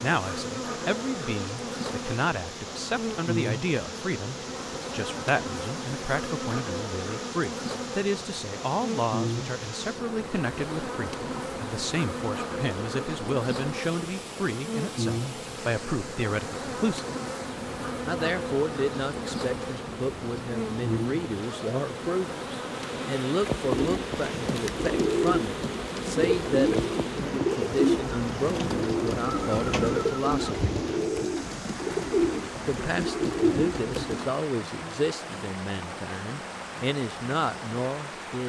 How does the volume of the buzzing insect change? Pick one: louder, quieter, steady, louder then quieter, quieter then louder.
steady.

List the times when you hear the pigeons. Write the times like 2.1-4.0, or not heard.
23.6-34.4.